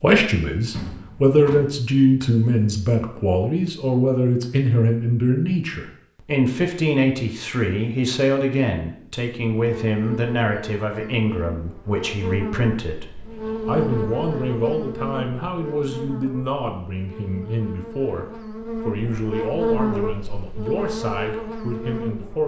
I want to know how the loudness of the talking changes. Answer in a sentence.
The volume of the talking goes down.